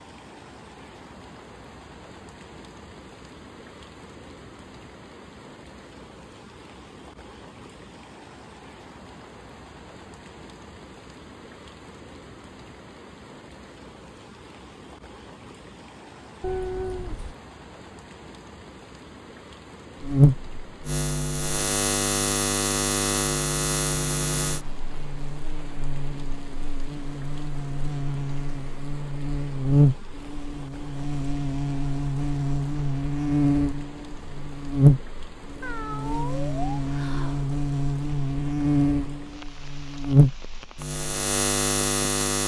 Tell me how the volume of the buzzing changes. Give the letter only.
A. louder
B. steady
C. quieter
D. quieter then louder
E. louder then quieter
D.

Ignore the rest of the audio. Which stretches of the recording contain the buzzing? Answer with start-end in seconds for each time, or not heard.
20.0-42.4.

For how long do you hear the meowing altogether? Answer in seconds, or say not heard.
3 s.